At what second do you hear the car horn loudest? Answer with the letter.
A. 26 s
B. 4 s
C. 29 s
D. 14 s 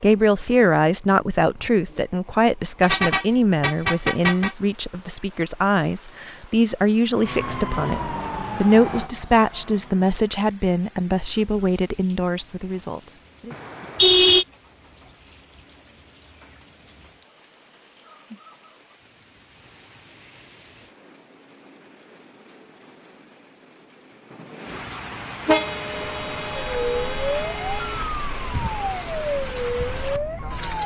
D.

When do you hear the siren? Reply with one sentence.
The siren can be heard from 7.2 to 10.1 s and from 26.1 to 30.8 s.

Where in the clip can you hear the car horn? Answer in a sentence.
You can hear the car horn from 2.8 to 4.5 s, from 13.5 to 14.4 s and from 25.4 to 28.0 s.